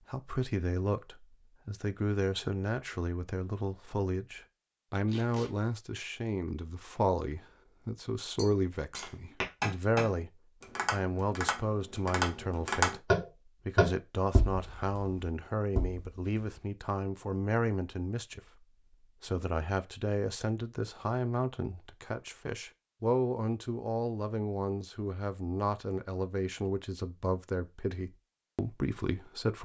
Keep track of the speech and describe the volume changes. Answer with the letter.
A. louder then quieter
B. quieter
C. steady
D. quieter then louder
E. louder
C.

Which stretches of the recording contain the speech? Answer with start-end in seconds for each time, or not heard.
0.1-10.3, 10.9-29.6.